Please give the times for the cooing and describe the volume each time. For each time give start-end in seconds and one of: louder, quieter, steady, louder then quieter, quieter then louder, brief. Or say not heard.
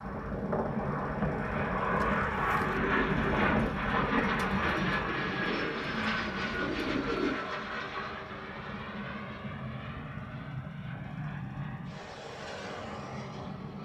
1.9-7.4 louder.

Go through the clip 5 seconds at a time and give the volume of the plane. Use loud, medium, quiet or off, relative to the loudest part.
loud, medium, medium.